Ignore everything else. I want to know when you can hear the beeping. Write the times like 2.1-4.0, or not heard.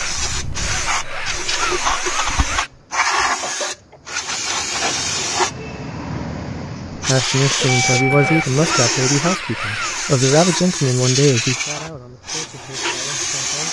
0.0-2.6, 7.7-8.9.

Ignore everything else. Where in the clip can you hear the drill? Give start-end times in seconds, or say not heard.
0.0-2.7, 7.2-10.6.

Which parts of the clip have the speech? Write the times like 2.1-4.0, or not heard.
7.0-13.6.